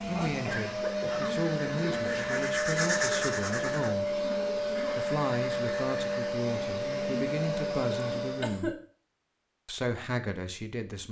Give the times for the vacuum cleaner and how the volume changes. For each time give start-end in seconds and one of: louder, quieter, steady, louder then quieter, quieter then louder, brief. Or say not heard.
0.0-8.7 steady.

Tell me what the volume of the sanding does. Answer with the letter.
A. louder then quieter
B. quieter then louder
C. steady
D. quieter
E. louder
A.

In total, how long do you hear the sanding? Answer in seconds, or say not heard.
5 s.